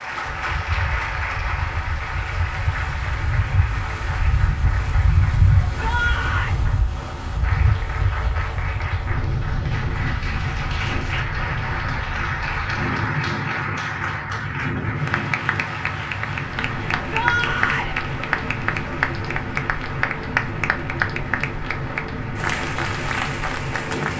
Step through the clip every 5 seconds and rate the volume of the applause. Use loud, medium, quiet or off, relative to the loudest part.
loud, medium, loud, loud, loud.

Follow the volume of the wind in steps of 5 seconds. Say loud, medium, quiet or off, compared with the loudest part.
medium, loud, loud, loud, loud.